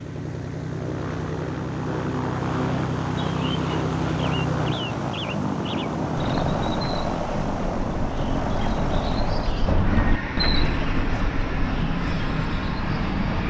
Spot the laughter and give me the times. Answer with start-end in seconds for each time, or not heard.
not heard.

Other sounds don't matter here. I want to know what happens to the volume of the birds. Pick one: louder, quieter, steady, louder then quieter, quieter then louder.
louder then quieter.